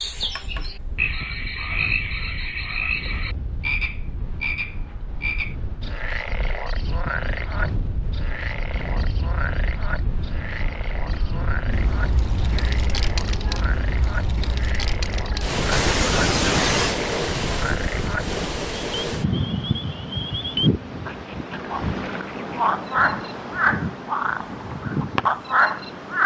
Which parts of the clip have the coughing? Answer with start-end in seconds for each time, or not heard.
15.7-17.0.